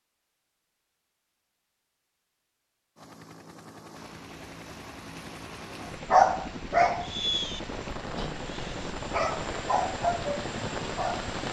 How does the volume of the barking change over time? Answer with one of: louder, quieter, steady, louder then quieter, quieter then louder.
quieter then louder.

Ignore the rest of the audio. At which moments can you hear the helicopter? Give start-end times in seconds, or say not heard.
3.0-11.4.